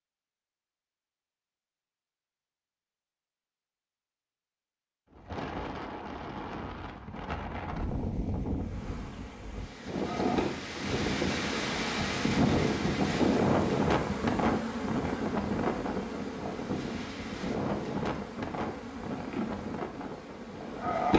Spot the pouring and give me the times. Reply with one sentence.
The pouring can't be heard in this clip.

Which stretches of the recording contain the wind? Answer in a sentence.
You can hear the wind from 5.1 to 21.1 s.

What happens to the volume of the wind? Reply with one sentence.
The loudness of the wind goes up, then down.